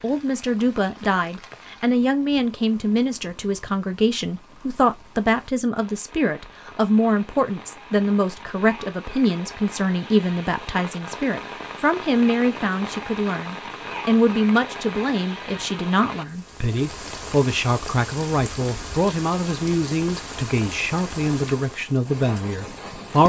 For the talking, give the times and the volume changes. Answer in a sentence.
You can hear the talking from 0.0 to 23.2 s, at a steady volume.